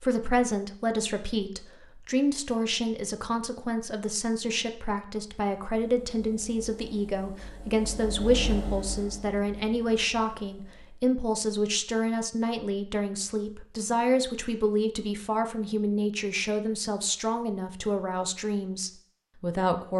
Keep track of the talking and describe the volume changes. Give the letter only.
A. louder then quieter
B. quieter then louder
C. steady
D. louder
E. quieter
C.